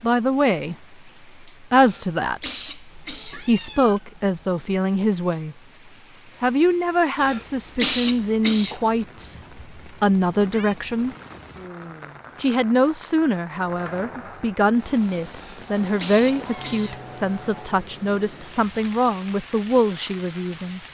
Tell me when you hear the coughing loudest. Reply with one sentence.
The volume of the coughing peaks at 8 seconds.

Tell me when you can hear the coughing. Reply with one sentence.
The coughing can be heard from 1.8 to 3.5 s, from 7.2 to 8.8 s and from 15.3 to 17.0 s.